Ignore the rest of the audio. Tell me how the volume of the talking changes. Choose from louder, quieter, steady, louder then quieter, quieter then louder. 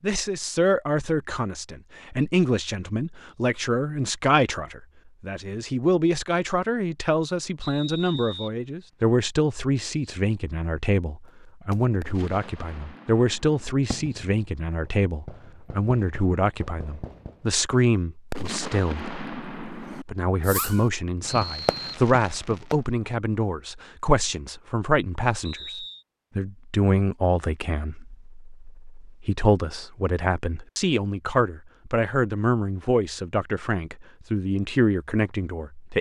steady.